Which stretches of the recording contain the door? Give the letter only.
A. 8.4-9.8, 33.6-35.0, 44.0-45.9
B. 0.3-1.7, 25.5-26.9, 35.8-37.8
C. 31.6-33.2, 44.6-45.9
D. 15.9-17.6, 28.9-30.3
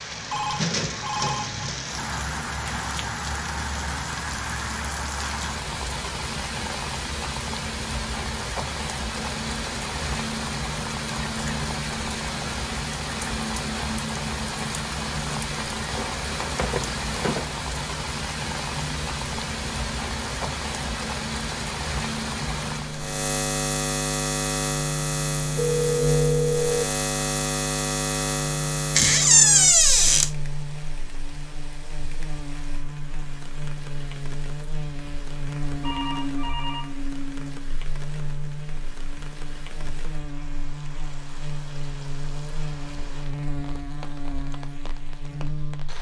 D.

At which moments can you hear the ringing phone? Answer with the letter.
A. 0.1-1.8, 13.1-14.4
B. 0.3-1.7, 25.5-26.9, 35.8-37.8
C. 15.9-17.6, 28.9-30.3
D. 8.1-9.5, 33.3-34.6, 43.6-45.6
B.